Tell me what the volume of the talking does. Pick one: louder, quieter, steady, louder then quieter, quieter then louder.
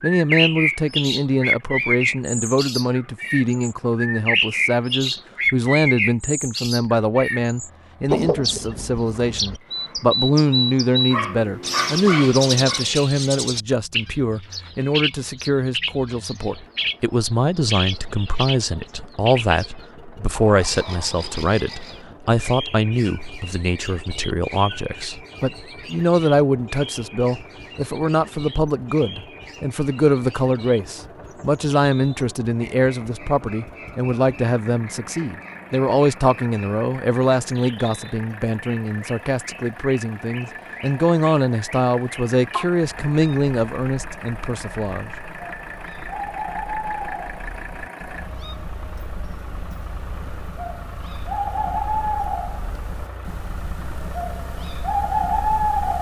steady.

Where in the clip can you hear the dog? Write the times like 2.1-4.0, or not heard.
11.1-12.8.